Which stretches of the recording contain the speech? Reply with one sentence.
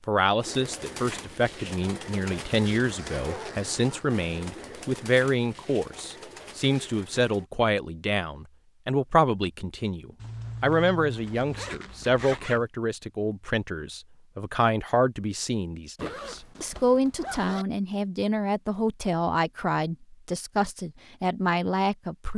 The speech can be heard from 0.1 to 22.3 s.